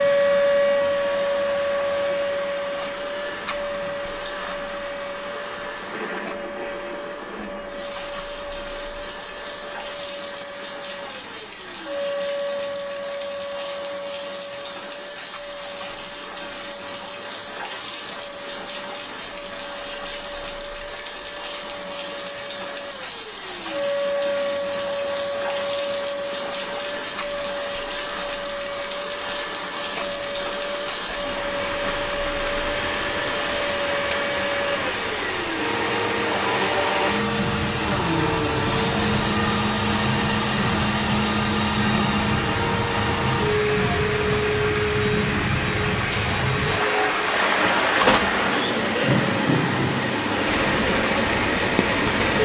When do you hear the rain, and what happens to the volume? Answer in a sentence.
You can hear the rain from 0.0 to 52.4 s, getting louder.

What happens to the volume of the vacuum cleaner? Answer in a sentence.
The volume of the vacuum cleaner goes down, then up.